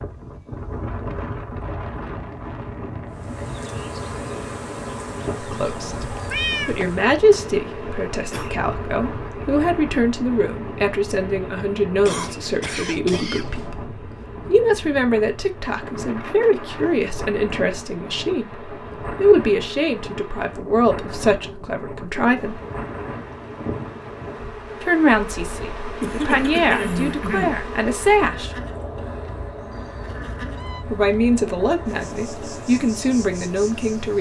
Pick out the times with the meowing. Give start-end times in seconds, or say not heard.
6.1-7.0, 29.7-30.9.